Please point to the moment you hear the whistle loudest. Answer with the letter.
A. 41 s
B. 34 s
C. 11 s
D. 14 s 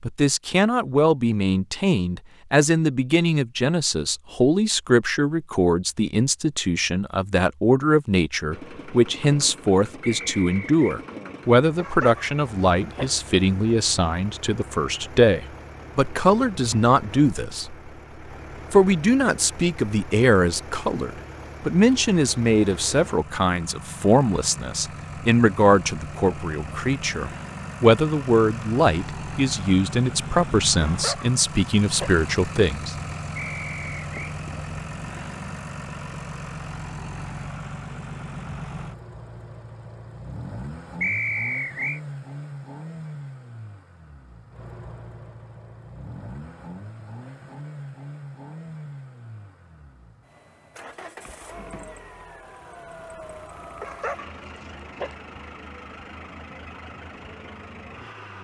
A.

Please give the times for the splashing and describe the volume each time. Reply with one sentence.
The splashing can't be heard in this clip.